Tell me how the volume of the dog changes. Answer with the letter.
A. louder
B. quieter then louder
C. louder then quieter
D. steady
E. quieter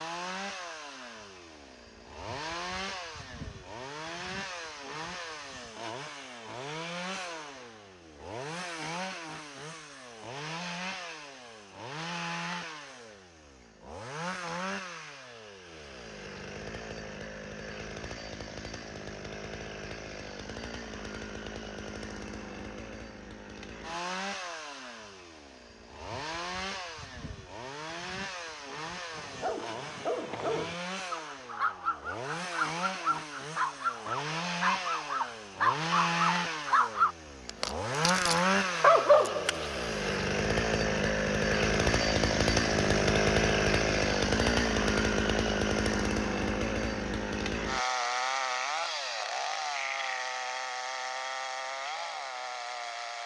A.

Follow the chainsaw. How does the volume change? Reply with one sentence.
The loudness of the chainsaw goes up.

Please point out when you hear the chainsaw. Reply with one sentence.
The chainsaw can be heard from 0.0 to 53.2 s.